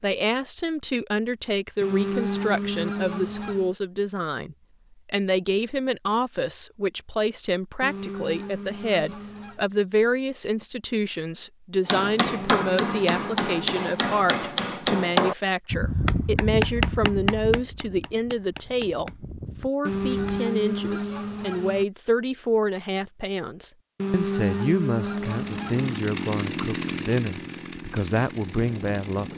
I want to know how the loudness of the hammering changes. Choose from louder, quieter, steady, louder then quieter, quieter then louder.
quieter.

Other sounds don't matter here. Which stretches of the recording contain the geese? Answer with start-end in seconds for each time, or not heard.
1.8-3.8, 7.8-9.7, 12.3-14.2, 19.9-21.9, 23.9-26.0.